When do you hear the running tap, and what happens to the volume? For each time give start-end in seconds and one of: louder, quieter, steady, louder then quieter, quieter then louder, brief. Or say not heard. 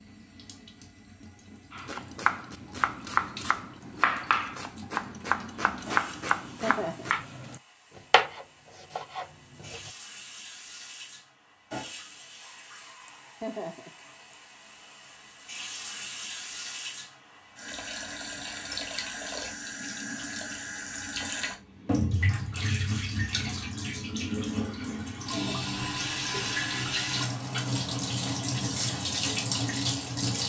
0.0-30.4 louder.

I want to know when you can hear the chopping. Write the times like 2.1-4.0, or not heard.
1.7-9.9.